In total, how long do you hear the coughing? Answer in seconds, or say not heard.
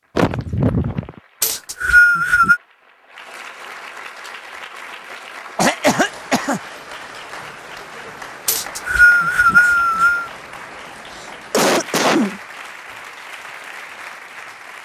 3 s.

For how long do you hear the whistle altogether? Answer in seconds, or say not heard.
3 s.